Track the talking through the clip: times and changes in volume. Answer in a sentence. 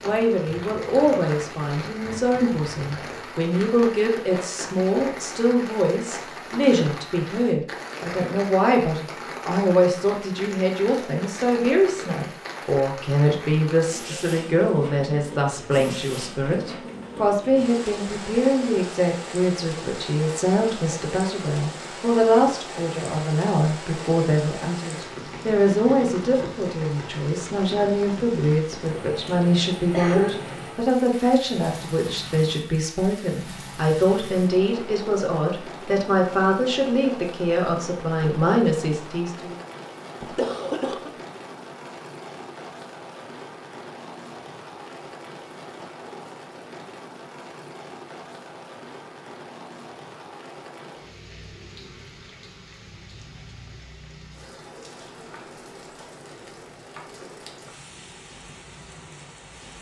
You can hear the talking from 0.0 to 39.5 s, at a steady volume.